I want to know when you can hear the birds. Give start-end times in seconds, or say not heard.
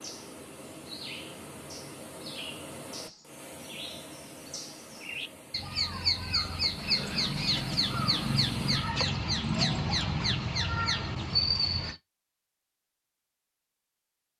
0.0-11.9.